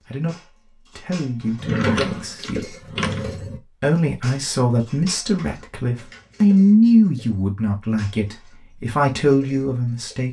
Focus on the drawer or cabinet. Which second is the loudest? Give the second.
2 s.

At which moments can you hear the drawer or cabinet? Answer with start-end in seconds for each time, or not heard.
1.6-3.6, 5.3-6.5.